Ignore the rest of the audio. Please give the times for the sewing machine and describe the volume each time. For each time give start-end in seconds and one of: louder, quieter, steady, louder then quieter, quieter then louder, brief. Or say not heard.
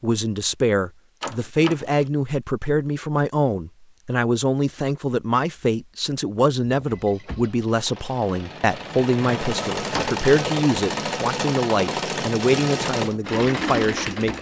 6.8-14.3 louder.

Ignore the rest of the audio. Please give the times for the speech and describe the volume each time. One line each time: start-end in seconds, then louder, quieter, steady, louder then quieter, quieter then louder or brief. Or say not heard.
0.0-14.3 steady.